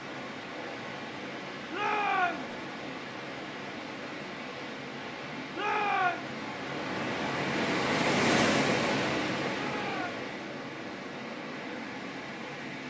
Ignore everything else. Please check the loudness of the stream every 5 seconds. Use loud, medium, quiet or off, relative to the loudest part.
medium, loud, medium.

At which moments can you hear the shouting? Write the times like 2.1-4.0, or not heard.
1.7-2.5, 5.5-6.3, 9.5-10.2.